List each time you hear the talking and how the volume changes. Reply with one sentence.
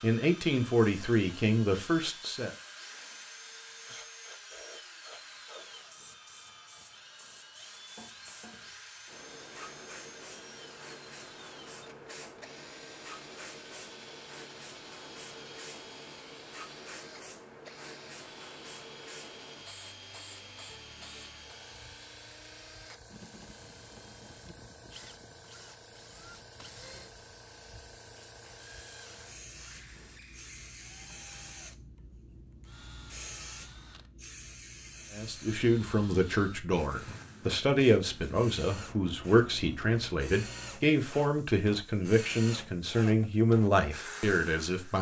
The talking can be heard briefly from 0.0 to 2.5 s; and from 35.1 to 44.9 s, at a steady volume.